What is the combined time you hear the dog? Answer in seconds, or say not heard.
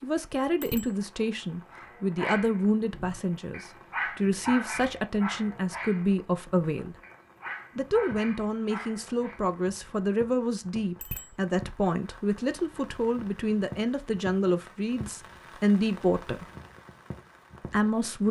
8 s.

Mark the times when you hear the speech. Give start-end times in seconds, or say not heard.
0.0-7.0, 7.8-16.4, 17.7-18.2.